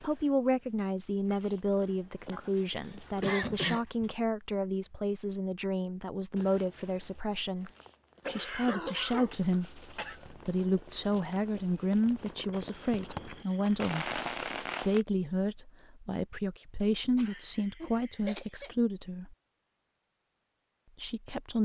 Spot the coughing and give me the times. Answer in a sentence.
You can hear the coughing from 2.3 to 4.0 s, from 8.2 to 10.2 s and from 17.1 to 18.8 s.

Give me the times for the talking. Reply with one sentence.
The talking can be heard from 0.0 to 19.4 s and from 20.9 to 21.5 s.